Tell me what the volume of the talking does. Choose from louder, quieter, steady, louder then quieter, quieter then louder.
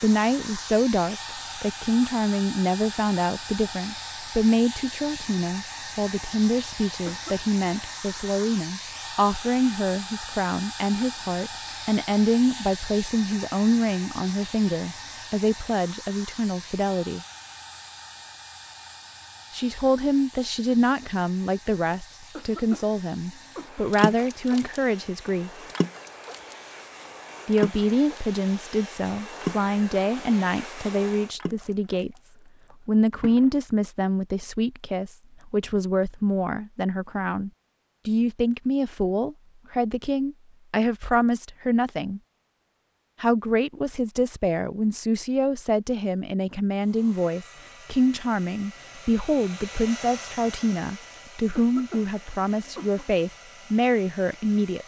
steady.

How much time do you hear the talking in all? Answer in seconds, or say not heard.
49 s.